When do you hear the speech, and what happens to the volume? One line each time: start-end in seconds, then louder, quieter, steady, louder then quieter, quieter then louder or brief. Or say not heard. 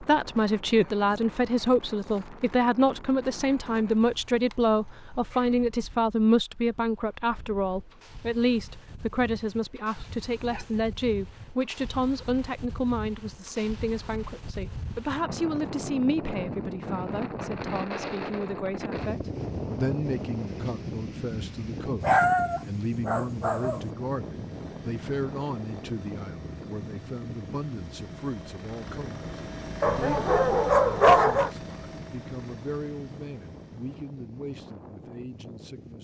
0.0-35.9 quieter.